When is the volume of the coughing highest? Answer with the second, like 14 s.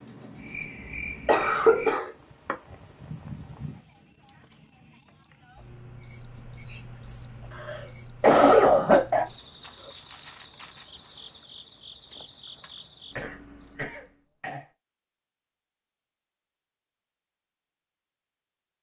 8 s.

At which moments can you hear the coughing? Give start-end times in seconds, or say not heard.
1.2-2.5, 7.5-9.2, 13.2-14.7.